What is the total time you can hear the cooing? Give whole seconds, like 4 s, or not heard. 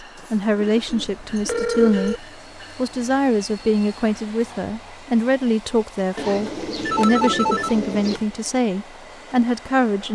4 s.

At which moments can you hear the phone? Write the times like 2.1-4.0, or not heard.
0.9-2.2, 6.8-8.2.